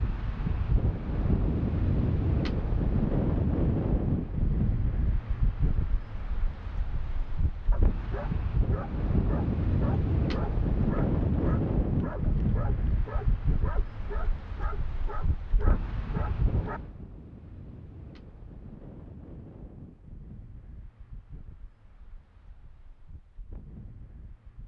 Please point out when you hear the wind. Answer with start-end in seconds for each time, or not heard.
0.0-24.6.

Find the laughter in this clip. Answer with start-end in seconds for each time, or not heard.
not heard.